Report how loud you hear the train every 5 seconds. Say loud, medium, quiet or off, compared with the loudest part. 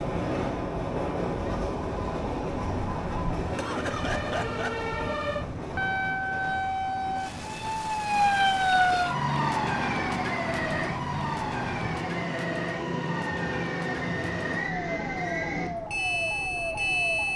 loud, medium, loud, loud.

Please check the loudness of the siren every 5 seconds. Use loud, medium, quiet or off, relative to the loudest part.
medium, loud, medium, medium.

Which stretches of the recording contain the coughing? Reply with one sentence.
You can hear the coughing from 3.4 to 4.9 s.